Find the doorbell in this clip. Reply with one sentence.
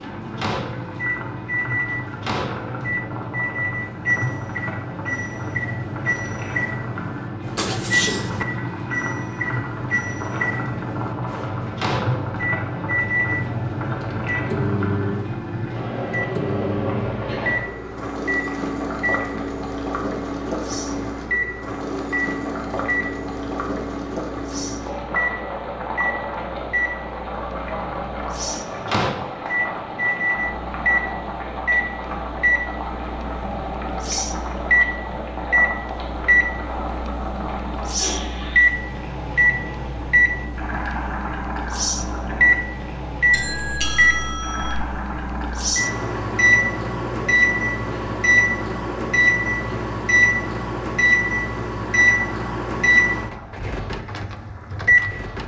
You can hear the doorbell from 7.5 to 8.4 s and from 43.3 to 44.9 s.